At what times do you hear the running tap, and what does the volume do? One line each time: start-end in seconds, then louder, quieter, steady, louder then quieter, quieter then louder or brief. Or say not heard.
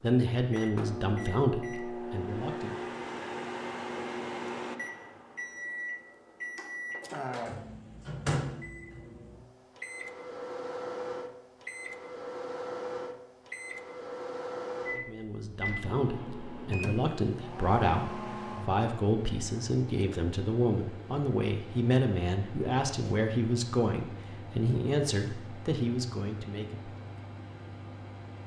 not heard.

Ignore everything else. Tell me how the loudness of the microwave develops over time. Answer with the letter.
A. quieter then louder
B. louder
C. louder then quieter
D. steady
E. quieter
E.